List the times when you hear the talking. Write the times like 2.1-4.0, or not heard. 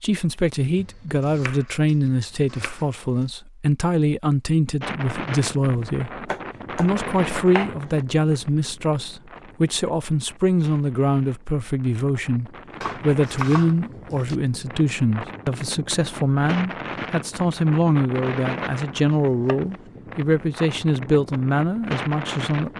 0.0-22.7.